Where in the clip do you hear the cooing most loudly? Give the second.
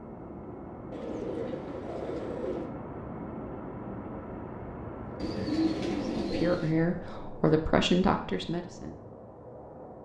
6 s.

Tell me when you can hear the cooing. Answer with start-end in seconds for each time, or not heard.
0.9-2.7, 5.2-6.8.